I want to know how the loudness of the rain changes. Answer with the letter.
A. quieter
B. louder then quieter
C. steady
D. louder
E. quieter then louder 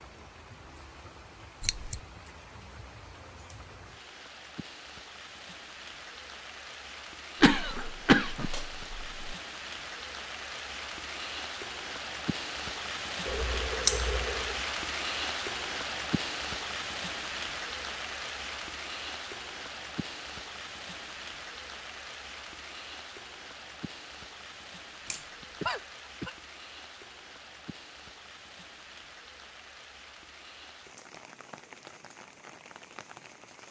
B.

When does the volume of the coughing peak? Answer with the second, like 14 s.
8 s.